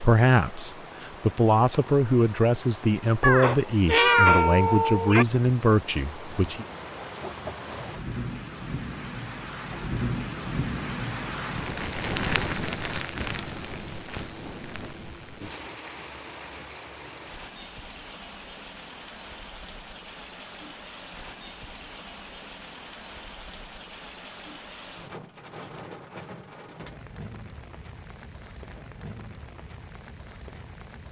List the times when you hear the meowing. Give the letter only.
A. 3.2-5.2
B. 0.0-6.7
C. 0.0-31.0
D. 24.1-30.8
A.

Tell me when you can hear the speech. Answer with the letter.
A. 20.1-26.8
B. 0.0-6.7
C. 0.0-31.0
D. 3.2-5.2
B.